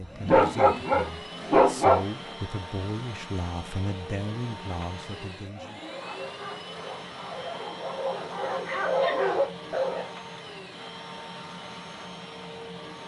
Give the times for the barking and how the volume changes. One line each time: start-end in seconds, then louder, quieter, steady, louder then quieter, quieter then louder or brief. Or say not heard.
0.0-2.0 brief
5.5-10.1 louder.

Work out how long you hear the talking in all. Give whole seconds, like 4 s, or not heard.
6 s.